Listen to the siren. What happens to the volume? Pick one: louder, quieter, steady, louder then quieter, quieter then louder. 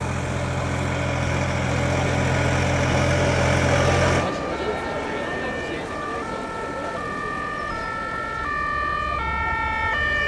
louder.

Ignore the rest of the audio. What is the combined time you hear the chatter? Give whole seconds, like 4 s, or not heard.
10 s.